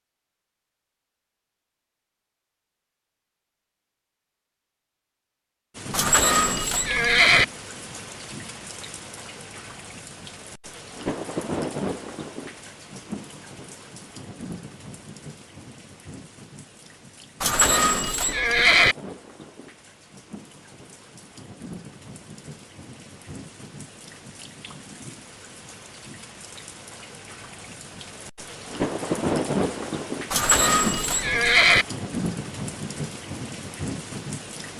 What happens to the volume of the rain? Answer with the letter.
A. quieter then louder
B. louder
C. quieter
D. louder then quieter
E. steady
A.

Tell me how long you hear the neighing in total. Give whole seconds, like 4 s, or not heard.
5 s.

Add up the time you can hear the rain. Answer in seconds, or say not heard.
29 s.